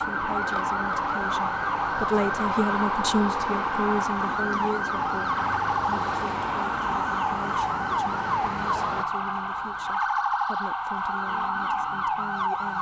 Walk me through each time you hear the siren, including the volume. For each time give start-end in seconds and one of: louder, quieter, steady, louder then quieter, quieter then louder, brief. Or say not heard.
0.0-12.7 steady.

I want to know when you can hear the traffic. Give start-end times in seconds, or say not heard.
0.0-9.1.